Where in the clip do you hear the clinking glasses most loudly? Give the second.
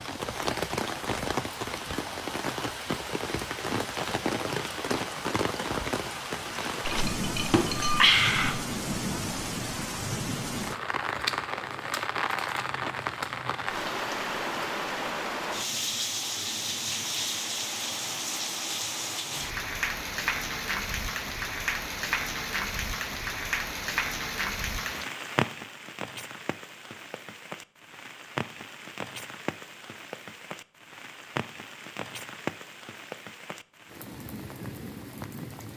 8 s.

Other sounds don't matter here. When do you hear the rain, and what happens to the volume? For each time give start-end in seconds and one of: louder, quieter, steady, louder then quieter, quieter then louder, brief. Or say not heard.
0.0-35.7 quieter.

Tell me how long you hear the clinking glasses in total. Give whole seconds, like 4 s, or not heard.
2 s.